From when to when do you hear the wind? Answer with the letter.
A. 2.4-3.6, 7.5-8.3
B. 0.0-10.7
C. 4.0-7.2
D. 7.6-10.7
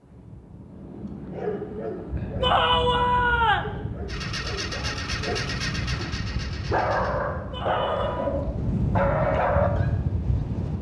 B.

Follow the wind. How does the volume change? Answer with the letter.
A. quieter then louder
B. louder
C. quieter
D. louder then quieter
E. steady
B.